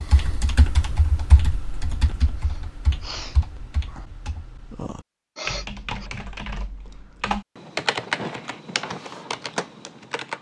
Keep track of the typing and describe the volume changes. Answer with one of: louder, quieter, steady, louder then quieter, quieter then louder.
quieter then louder.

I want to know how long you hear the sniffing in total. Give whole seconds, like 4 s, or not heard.
2 s.